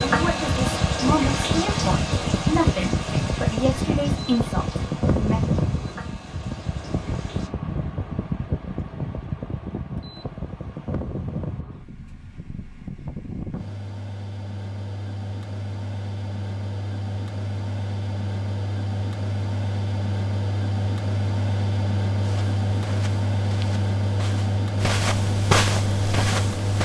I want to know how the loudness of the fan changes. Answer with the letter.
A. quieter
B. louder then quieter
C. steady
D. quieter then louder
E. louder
D.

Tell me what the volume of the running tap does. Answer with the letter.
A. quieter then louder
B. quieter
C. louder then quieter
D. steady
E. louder
B.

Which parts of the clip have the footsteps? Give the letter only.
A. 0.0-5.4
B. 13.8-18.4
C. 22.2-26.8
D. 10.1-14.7
C.